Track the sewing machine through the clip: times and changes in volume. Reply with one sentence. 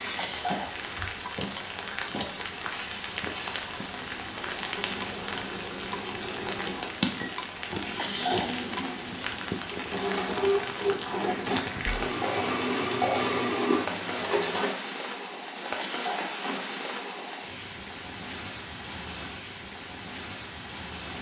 You can hear the sewing machine from 4.0 to 14.7 s, getting louder.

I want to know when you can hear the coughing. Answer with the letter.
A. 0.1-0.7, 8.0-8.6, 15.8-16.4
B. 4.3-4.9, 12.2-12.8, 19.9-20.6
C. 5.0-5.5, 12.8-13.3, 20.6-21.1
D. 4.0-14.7
A.